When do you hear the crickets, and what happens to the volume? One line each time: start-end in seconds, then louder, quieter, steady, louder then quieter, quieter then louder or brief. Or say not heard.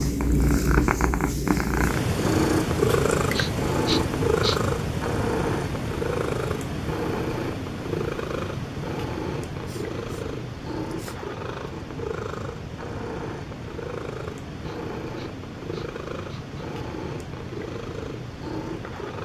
not heard.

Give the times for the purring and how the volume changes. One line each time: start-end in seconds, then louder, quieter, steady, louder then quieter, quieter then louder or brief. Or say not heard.
0.0-19.2 quieter.